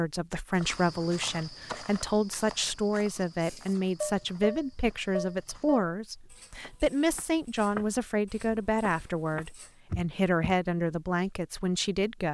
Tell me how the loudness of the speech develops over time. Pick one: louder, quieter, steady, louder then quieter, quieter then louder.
steady.